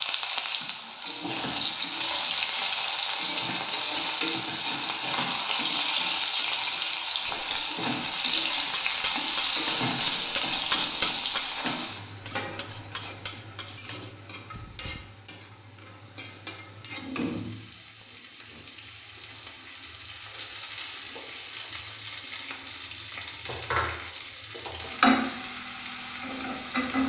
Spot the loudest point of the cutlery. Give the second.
11 s.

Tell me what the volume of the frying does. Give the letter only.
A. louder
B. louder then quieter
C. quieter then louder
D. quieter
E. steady
C.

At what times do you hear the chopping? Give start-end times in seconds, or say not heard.
not heard.